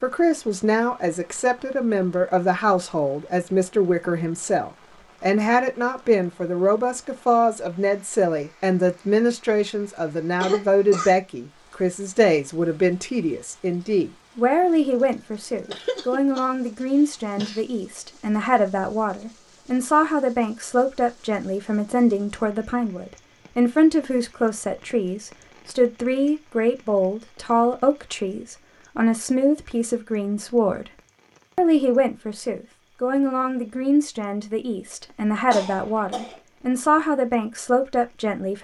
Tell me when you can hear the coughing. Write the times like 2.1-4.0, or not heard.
10.4-11.2, 15.7-17.6, 35.5-36.4.